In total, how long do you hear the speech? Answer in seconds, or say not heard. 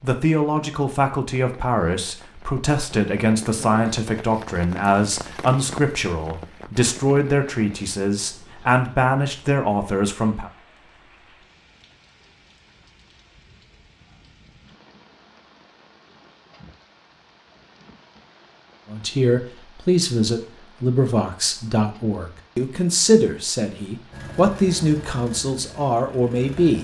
18 s.